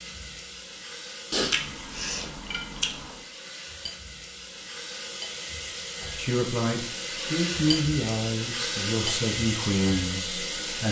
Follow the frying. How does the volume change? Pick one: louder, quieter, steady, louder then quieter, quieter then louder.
louder.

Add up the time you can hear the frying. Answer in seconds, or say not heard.
11 s.